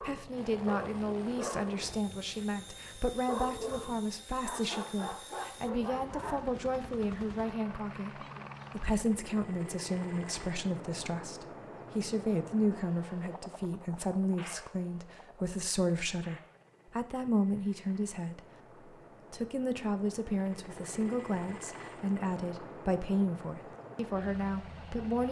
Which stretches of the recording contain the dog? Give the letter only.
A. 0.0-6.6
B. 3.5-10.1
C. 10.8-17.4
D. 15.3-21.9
A.